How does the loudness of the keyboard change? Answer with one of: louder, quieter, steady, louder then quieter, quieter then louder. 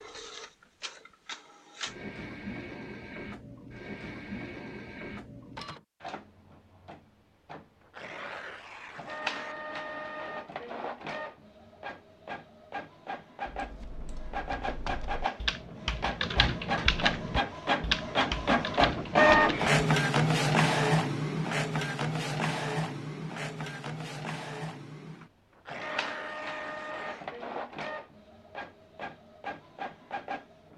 louder then quieter.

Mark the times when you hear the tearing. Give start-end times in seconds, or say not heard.
7.8-9.6, 25.6-27.2.